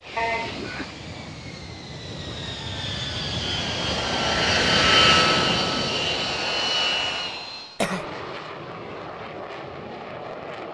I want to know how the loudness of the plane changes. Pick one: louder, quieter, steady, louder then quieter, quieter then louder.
louder then quieter.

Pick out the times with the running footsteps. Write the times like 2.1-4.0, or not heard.
not heard.